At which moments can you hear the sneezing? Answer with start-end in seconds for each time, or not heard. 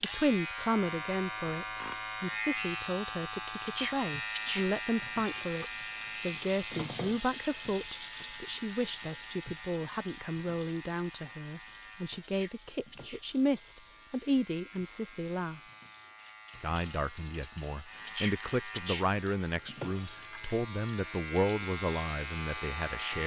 3.6-4.7, 12.2-13.2, 18.1-19.1.